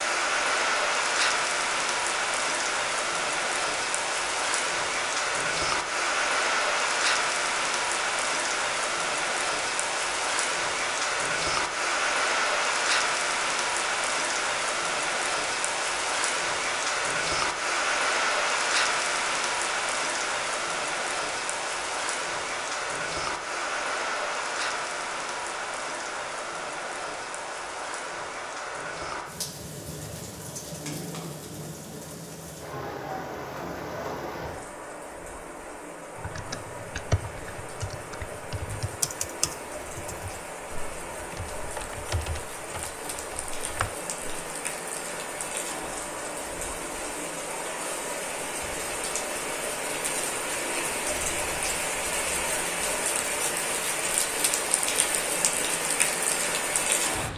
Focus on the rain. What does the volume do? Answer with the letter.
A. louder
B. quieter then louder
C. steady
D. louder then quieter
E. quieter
B.